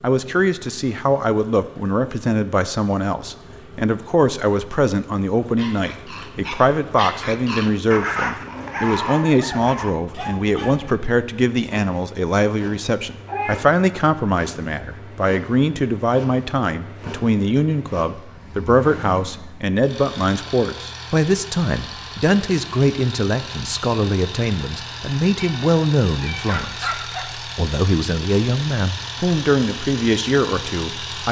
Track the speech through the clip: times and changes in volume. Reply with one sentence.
The speech can be heard from 0.0 to 31.2 s, at a steady volume.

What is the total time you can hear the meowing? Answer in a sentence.
The meowing can be heard for 2 seconds in total.